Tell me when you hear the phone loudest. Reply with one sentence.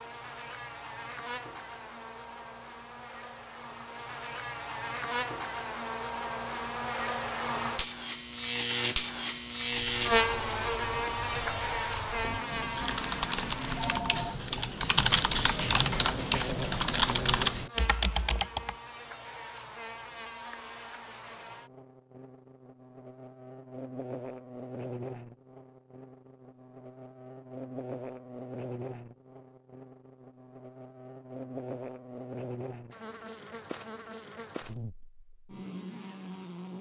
The volume of the phone peaks at 14 seconds.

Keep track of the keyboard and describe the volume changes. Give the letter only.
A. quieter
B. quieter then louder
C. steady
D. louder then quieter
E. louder
E.